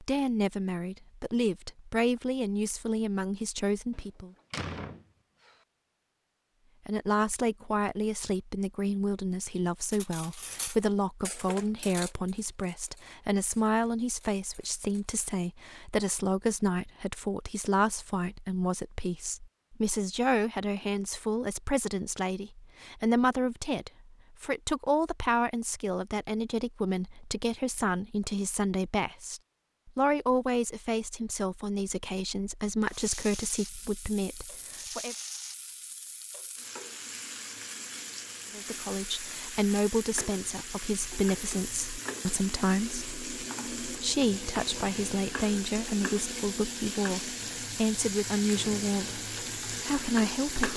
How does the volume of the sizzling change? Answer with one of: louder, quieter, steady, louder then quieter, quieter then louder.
louder.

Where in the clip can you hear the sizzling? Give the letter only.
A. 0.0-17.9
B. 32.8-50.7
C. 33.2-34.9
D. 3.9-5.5
B.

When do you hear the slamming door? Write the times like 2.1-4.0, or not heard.
3.9-5.5.